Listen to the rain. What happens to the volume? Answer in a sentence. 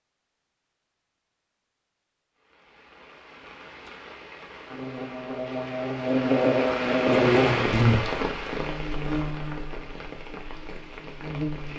The loudness of the rain goes up, then down.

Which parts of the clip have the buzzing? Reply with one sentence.
The buzzing can be heard from 4.7 to 11.7 s.